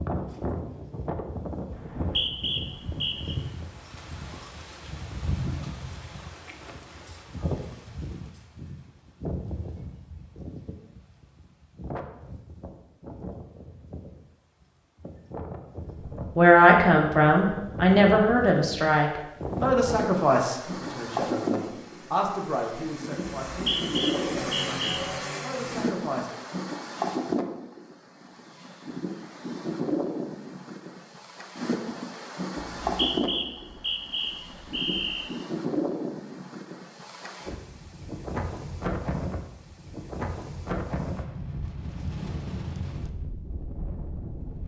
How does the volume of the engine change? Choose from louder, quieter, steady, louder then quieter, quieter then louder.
louder.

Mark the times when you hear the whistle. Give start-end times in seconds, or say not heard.
1.8-3.4, 23.5-25.0, 32.5-35.3.